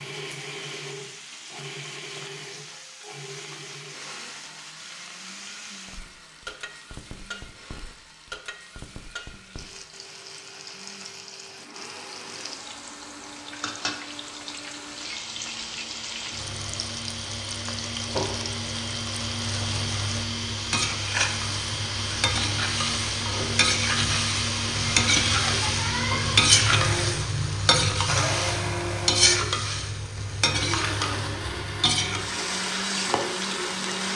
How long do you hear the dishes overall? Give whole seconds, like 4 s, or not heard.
not heard.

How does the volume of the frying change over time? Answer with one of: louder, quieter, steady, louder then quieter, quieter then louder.
louder.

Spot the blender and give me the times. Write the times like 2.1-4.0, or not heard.
0.0-34.1.